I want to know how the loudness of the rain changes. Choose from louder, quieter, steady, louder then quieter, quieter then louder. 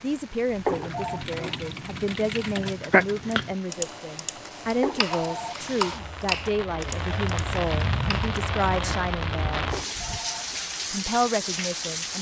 louder.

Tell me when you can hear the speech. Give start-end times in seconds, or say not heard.
0.0-9.7, 10.9-12.1.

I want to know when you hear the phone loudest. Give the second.
1 s.